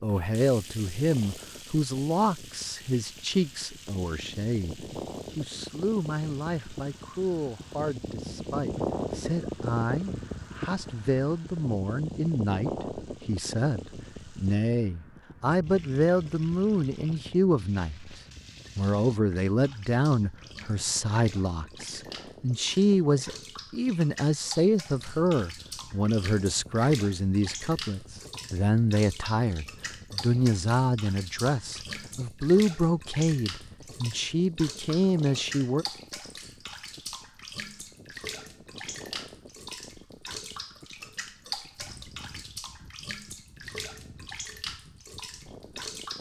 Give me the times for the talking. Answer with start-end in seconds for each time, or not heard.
0.0-35.9.